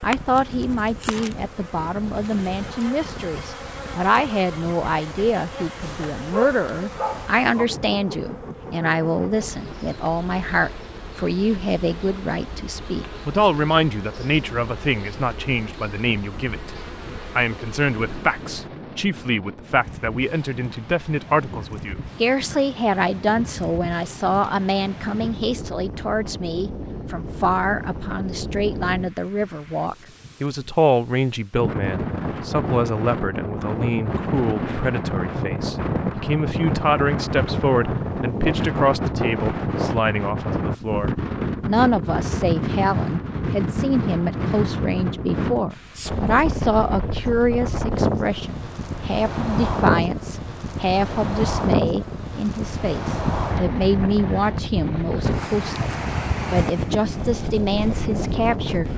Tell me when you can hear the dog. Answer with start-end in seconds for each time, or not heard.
5.8-7.3.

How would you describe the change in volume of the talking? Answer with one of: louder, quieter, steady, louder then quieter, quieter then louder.
steady.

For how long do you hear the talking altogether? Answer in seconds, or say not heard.
58 s.